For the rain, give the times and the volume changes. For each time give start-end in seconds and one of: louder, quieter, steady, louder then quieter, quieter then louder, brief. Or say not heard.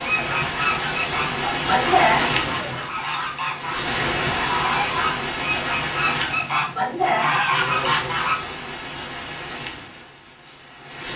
0.0-11.1 quieter.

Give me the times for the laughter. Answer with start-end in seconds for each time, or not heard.
1.5-2.9, 6.5-7.5.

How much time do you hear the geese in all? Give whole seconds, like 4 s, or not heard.
8 s.